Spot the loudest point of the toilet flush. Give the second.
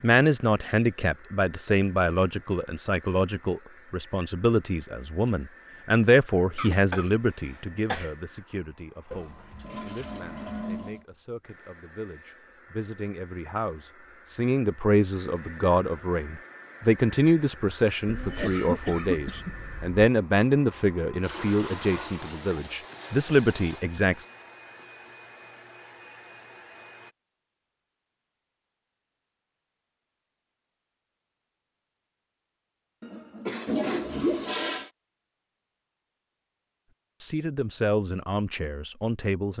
34 s.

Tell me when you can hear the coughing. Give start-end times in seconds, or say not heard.
6.5-8.1, 18.1-19.9, 33.0-34.2.